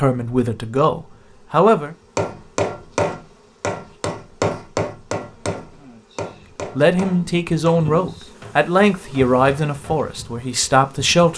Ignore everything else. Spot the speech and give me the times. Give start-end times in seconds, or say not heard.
0.0-1.9, 6.8-11.3.